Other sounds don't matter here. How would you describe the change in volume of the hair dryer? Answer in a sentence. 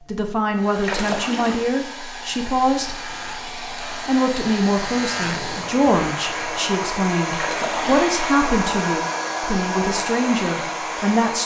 The loudness of the hair dryer goes up.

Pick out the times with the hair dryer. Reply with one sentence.
The hair dryer can be heard from 0.0 to 11.4 s.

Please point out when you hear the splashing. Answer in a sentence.
The splashing can be heard from 0.8 to 1.8 s and from 7.3 to 8.0 s.